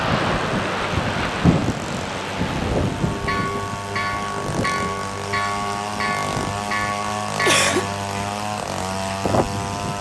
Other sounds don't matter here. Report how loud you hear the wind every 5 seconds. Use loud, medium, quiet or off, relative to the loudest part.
loud, medium.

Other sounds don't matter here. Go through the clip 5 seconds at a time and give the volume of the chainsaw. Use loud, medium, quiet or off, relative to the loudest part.
medium, loud.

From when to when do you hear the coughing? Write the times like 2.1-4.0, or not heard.
7.5-8.3.